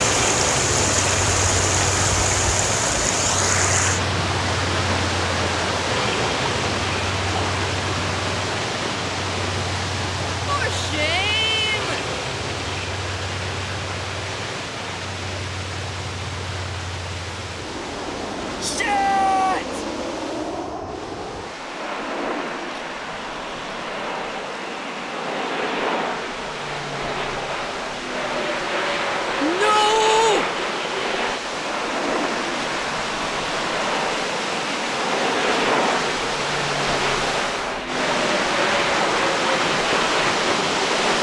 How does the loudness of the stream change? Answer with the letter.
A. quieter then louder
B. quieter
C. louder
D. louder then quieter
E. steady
A.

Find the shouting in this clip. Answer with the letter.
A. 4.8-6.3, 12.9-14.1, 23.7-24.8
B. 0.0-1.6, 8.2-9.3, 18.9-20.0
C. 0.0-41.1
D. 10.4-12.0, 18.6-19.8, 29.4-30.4
D.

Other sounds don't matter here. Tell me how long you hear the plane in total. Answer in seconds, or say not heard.
41 s.